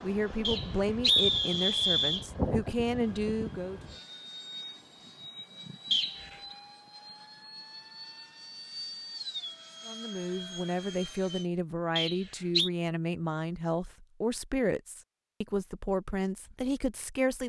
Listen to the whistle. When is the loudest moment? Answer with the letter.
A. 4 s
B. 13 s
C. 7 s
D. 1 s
D.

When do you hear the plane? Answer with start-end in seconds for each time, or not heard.
0.0-11.5.